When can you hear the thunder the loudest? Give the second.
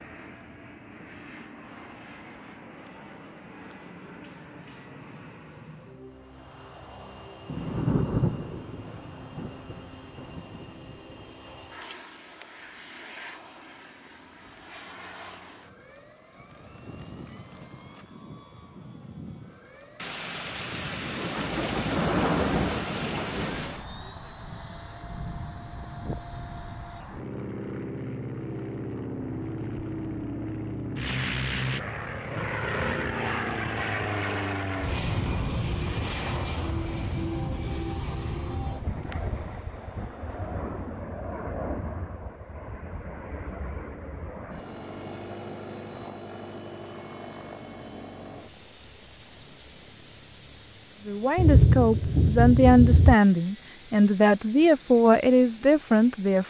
52 s.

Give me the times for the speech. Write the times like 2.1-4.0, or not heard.
51.0-56.4.